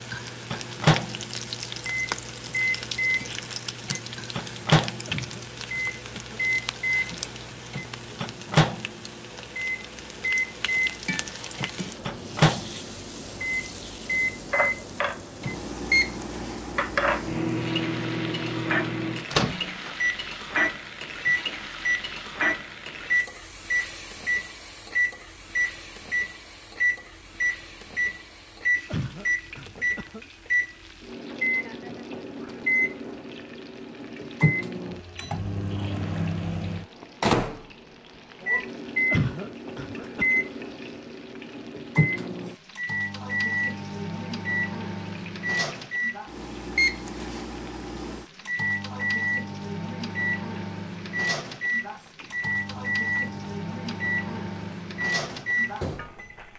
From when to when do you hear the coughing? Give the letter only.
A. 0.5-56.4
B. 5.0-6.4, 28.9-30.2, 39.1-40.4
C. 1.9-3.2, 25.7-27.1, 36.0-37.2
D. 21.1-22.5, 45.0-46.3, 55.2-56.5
B.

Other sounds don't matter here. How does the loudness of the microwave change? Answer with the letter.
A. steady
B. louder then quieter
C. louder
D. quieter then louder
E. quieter
A.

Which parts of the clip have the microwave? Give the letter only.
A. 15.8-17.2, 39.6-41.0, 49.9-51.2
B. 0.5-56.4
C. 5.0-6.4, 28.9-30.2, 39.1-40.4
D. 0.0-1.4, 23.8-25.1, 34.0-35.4
B.